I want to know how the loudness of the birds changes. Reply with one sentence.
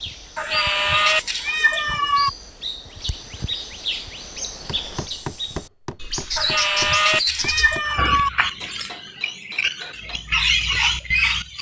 The volume of the birds goes up.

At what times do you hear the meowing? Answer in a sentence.
You can hear the meowing from 0.3 to 2.3 s and from 6.3 to 8.3 s.